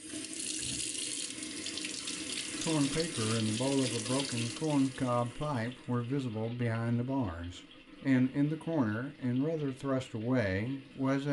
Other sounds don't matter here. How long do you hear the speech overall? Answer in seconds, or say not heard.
9 s.